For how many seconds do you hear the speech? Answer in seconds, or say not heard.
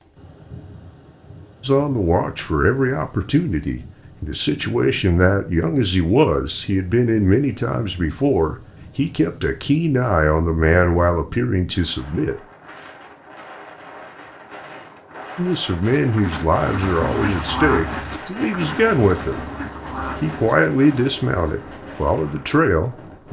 18 s.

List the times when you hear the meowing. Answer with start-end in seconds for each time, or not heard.
not heard.